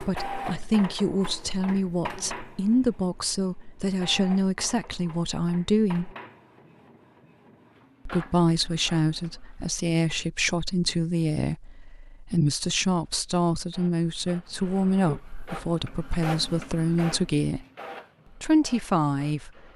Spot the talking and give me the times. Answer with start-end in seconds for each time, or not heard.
0.0-6.1, 8.1-17.6, 18.4-19.7.